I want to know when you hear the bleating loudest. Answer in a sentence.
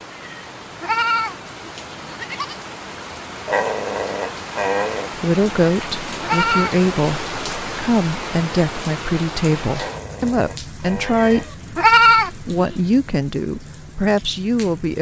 The loudest moment of the bleating is at 12 seconds.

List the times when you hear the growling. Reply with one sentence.
You can hear the growling from 3.5 to 5.1 s and from 9.7 to 11.5 s.